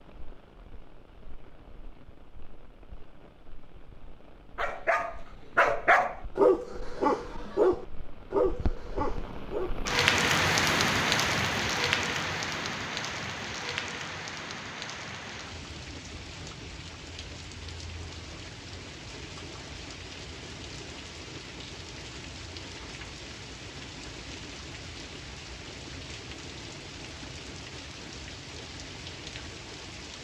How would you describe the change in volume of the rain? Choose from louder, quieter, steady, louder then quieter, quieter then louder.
louder then quieter.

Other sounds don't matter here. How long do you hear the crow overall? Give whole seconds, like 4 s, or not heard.
not heard.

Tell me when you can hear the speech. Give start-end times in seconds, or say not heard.
not heard.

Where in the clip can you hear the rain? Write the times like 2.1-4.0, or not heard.
0.0-30.1.